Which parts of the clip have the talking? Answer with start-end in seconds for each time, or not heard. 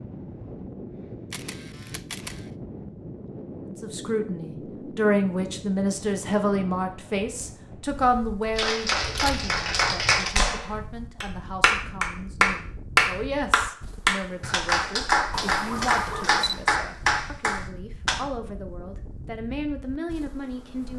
3.7-20.9.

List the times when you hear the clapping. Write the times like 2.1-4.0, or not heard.
8.6-18.2.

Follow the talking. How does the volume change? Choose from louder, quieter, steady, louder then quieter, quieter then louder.
quieter.